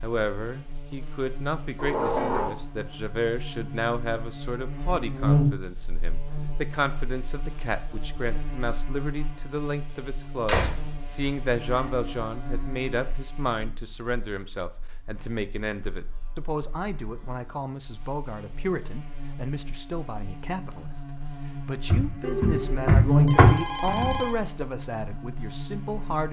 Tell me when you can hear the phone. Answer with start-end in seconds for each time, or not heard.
22.2-24.6.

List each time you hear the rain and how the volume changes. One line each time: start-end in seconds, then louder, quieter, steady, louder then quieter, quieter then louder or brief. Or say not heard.
not heard.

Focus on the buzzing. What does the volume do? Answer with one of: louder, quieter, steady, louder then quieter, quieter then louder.
quieter then louder.